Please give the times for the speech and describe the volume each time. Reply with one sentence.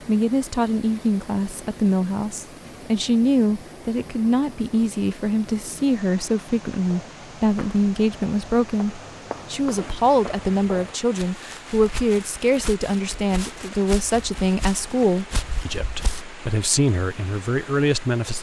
The speech can be heard from 0.1 to 18.3 s, at a steady volume.